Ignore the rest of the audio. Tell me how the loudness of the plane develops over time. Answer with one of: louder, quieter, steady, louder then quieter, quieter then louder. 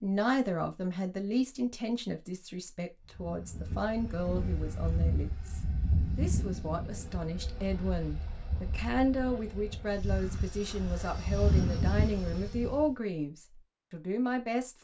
quieter then louder.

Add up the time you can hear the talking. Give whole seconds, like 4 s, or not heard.
15 s.